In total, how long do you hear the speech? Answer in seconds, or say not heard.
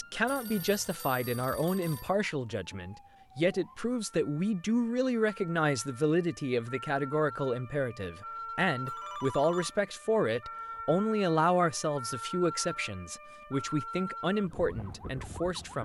16 s.